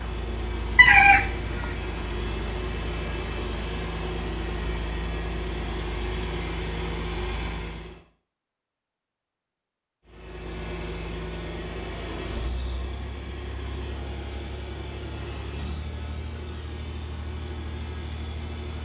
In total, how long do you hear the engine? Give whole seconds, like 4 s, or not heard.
17 s.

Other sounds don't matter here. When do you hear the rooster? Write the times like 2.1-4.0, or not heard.
0.8-1.8.